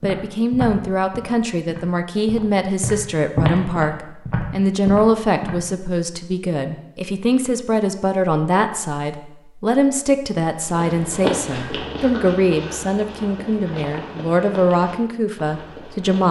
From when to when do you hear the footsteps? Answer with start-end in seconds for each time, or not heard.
0.0-5.5, 10.7-16.2.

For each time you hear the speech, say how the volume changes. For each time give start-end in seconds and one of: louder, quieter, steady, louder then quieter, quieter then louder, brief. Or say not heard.
0.0-16.2 steady.